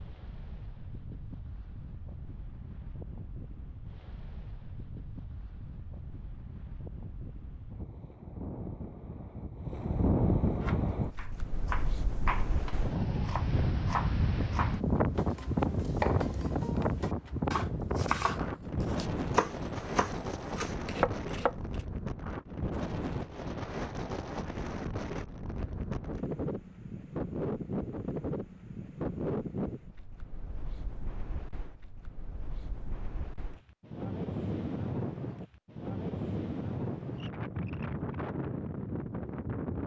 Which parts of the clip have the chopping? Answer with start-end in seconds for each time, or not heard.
10.6-21.6.